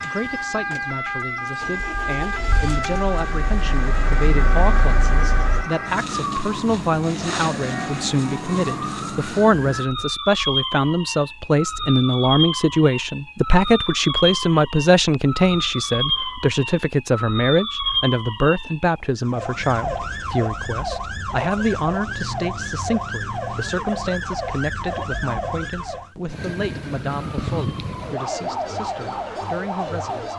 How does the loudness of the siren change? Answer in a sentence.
The volume of the siren stays about the same.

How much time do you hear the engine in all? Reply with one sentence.
You can hear the engine for 6 seconds altogether.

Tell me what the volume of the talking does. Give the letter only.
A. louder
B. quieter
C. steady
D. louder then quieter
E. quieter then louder
D.